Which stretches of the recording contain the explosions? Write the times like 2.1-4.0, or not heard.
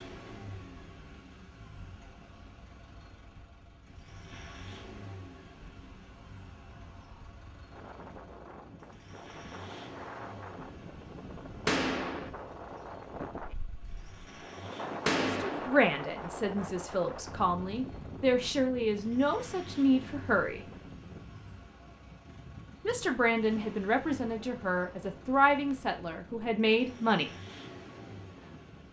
11.7-12.3, 15.1-15.7.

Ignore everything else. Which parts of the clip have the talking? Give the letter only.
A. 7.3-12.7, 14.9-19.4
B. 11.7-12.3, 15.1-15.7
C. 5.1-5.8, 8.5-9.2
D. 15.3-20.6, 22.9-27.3
D.